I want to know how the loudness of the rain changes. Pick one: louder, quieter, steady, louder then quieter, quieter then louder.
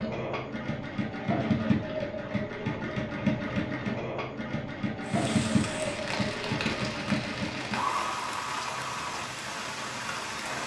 steady.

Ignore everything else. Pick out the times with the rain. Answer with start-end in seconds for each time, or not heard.
5.0-10.6.